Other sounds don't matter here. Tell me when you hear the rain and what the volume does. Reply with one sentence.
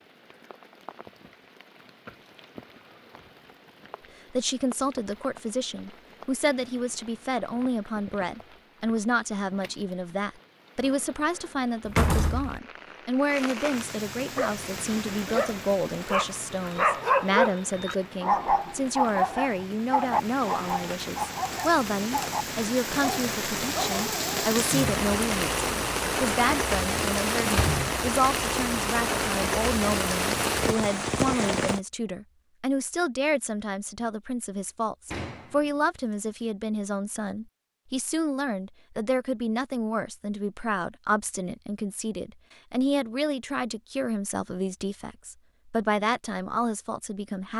The rain can be heard from 0.0 to 31.8 s, getting louder.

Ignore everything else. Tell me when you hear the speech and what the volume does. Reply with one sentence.
The speech can be heard from 4.3 to 47.5 s, at a steady volume.